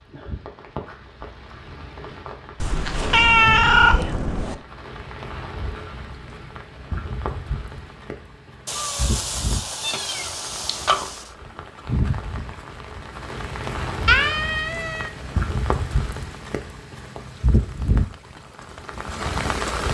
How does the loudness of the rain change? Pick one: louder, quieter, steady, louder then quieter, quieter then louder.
louder.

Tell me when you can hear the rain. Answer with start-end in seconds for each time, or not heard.
0.0-19.8.